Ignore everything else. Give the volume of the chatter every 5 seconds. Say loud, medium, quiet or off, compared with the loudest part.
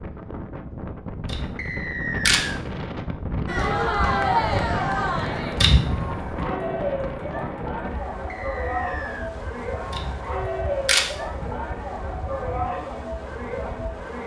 loud, medium, medium.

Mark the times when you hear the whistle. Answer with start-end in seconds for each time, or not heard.
1.6-2.6, 8.3-9.3.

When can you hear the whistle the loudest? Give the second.
2 s.